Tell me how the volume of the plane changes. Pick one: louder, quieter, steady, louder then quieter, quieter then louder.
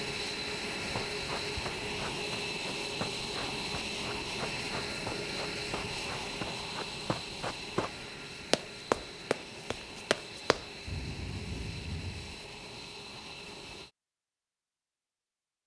quieter.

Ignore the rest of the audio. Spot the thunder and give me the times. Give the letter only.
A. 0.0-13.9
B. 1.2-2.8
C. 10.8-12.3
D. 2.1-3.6
C.